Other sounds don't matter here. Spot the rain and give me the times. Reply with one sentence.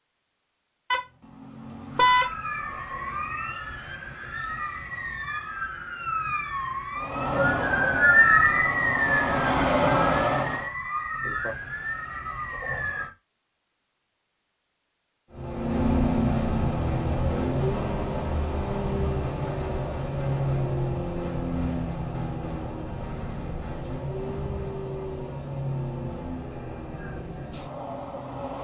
The rain can't be heard in this clip.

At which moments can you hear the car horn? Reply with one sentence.
You can hear the car horn from 0.9 to 2.3 s.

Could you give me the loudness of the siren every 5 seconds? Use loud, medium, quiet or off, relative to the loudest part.
medium, loud, medium, off, off, off.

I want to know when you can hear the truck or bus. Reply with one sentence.
You can hear the truck or bus from 7.0 to 10.7 s and from 15.3 to 28.5 s.